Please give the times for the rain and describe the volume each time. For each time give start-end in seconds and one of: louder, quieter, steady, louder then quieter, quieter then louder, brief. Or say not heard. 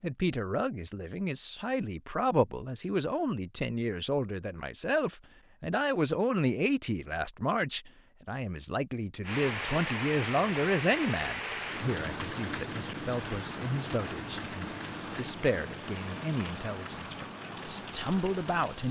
9.2-18.8 quieter.